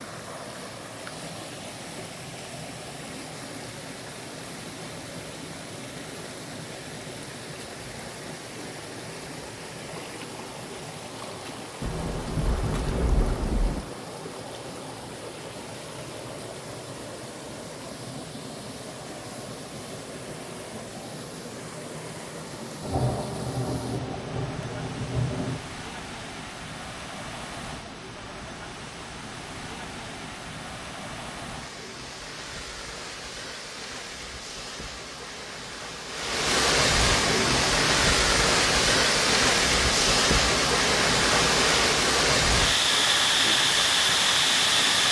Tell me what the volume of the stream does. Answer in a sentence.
The loudness of the stream goes up.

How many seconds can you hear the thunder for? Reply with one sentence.
The thunder can be heard for 5 seconds in total.